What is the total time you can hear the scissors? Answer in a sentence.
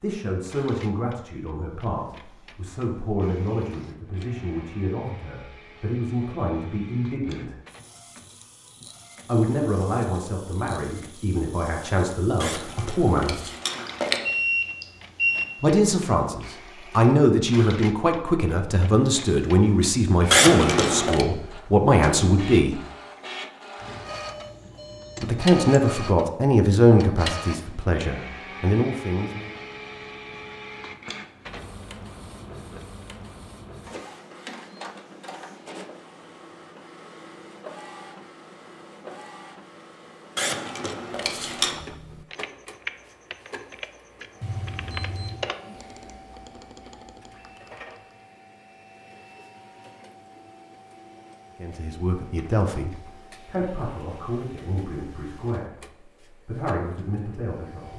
You can hear the scissors for 4 seconds altogether.